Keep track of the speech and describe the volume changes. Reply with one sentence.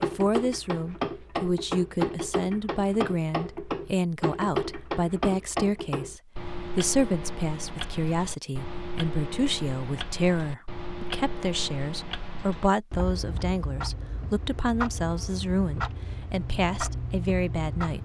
The loudness of the speech stays about the same.